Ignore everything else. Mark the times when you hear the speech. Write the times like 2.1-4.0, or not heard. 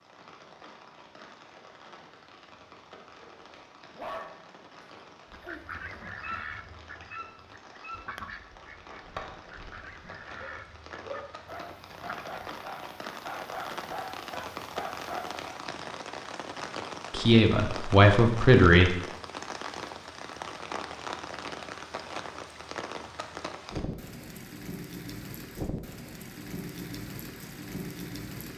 17.1-18.9.